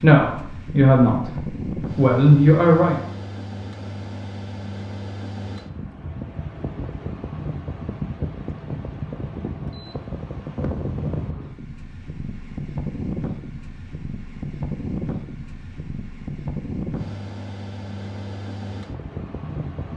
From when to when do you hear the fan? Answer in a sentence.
You can hear the fan from 0.0 to 19.9 s.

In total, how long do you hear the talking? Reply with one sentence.
You can hear the talking for 3 seconds altogether.